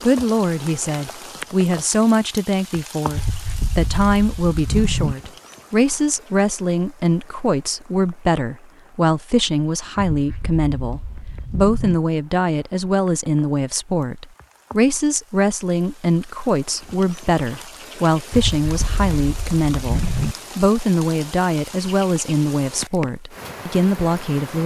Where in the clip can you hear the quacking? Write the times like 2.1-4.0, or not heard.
3.1-5.2, 10.1-11.9, 18.3-20.4.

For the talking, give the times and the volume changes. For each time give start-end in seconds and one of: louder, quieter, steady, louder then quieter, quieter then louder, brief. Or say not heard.
0.0-24.6 steady.